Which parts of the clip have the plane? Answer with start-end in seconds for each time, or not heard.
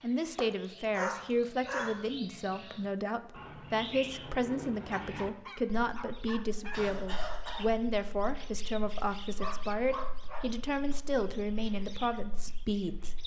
not heard.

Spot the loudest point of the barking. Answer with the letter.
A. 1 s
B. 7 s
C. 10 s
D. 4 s
A.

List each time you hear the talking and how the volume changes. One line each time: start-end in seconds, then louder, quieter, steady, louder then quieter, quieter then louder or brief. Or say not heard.
0.0-13.2 steady.